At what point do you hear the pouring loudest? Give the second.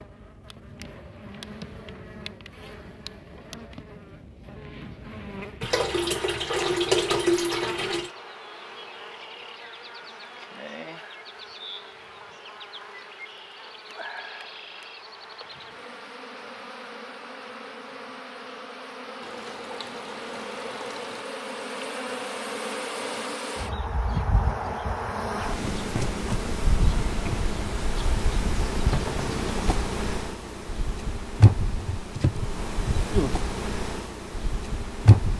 7 s.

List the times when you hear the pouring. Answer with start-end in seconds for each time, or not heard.
5.6-8.1, 19.2-21.2.